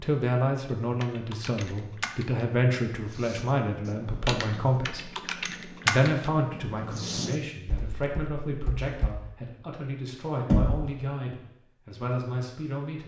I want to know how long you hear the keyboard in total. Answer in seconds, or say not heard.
8 s.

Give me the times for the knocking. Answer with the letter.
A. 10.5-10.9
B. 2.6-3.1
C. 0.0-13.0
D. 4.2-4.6
A.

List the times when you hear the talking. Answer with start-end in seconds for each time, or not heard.
0.0-13.0.